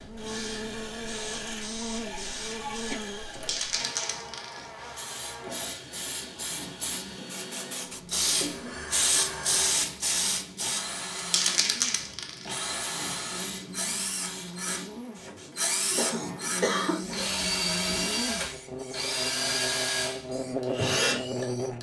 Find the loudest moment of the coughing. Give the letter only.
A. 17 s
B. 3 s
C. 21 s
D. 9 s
A.